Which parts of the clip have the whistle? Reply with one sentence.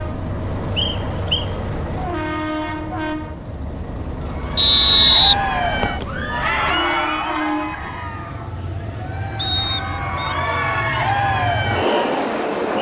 The whistle can be heard from 0.8 to 1.4 s, from 4.5 to 6.0 s and from 9.3 to 10.3 s.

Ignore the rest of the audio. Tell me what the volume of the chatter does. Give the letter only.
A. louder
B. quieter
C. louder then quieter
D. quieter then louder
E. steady
D.